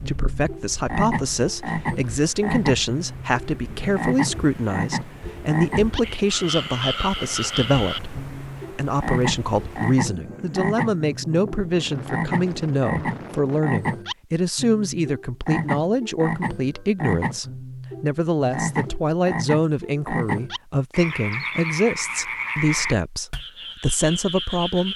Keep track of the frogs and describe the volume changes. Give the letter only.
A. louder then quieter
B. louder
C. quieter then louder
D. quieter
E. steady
E.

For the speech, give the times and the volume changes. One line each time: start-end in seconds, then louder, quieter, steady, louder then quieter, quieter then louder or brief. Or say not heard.
0.0-24.9 steady.